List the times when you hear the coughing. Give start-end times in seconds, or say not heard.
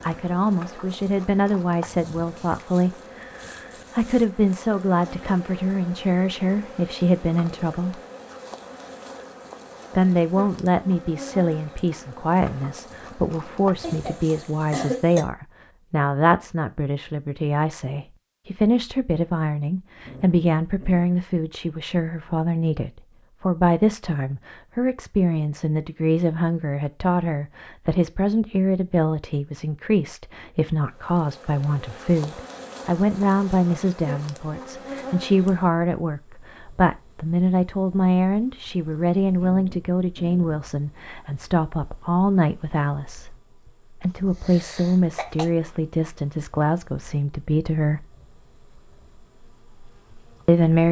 13.8-15.2, 44.0-45.5.